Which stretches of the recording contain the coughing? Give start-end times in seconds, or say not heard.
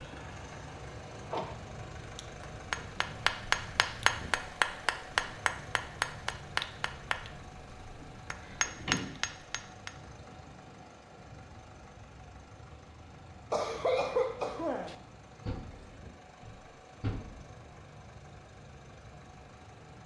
13.5-14.9.